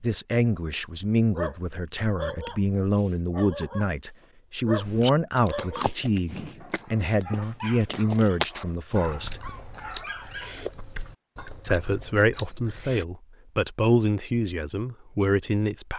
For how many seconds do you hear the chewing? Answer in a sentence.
The chewing can be heard for 8 seconds in total.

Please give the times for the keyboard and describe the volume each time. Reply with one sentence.
The keyboard can't be heard in this clip.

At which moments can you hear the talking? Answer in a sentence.
The talking can be heard from 0.0 to 9.4 s and from 11.6 to 15.9 s.